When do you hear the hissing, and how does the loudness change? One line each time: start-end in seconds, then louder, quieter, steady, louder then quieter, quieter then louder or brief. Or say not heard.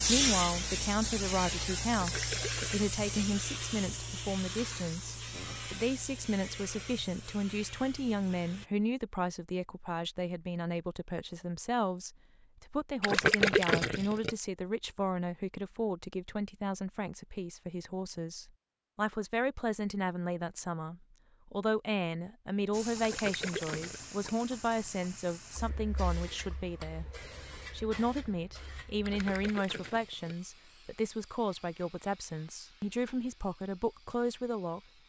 0.0-8.7 quieter
22.7-35.0 quieter.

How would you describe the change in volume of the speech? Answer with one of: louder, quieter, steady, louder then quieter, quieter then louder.
steady.